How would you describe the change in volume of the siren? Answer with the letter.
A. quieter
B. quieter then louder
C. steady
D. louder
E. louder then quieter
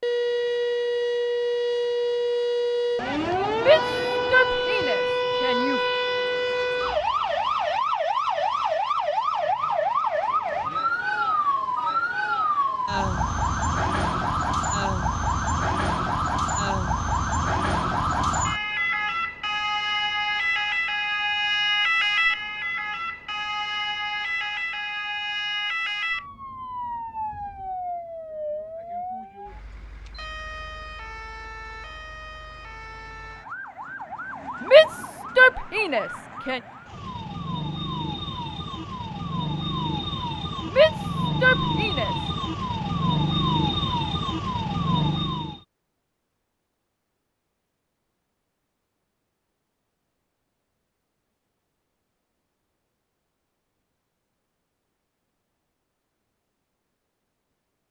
B.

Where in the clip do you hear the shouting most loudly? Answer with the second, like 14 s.
35 s.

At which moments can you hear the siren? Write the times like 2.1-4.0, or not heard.
0.0-45.6.